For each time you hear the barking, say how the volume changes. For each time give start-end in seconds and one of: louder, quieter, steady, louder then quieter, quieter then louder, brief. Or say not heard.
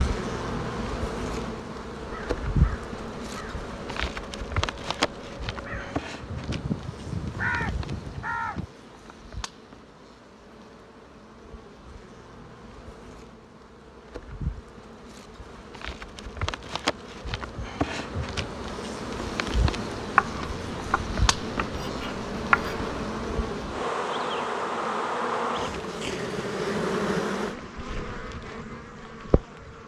not heard.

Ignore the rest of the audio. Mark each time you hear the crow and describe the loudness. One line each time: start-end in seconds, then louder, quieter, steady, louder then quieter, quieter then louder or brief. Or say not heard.
2.0-8.7 louder.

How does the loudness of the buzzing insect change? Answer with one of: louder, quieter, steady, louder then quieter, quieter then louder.
quieter then louder.